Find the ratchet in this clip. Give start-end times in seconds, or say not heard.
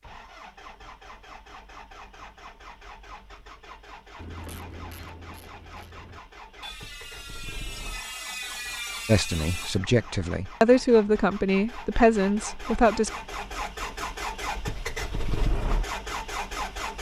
4.2-9.8.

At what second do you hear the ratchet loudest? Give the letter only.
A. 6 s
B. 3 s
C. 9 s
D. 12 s
C.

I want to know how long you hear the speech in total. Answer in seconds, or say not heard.
4 s.